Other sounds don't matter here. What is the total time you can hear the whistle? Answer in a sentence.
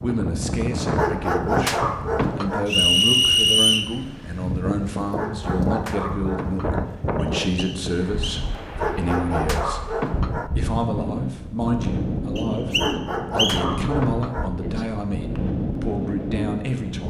You can hear the whistle for 4 seconds altogether.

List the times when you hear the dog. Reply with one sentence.
The dog can be heard from 0.9 to 2.6 s, from 5.2 to 6.8 s, from 8.8 to 10.5 s and from 12.8 to 14.5 s.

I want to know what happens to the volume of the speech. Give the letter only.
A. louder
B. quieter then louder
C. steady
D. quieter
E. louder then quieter
C.